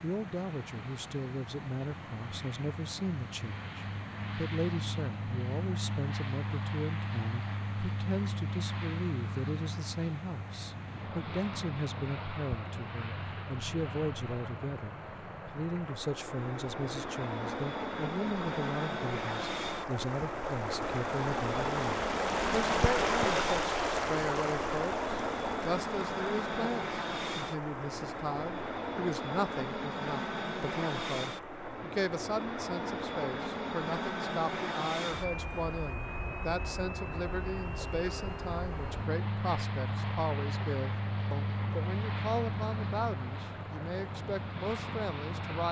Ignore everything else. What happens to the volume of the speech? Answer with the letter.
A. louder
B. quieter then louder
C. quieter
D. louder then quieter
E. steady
E.